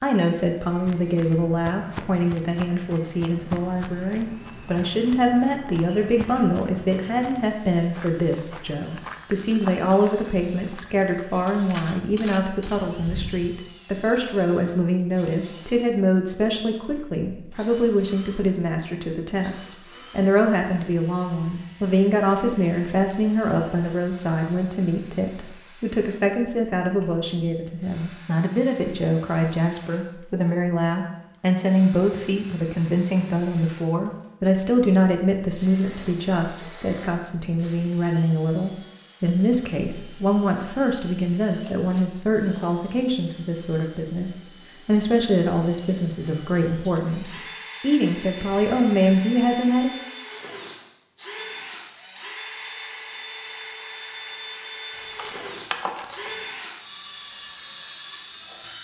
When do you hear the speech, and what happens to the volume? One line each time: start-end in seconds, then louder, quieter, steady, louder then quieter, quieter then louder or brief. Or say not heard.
0.0-50.0 steady.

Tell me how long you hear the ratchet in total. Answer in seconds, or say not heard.
4 s.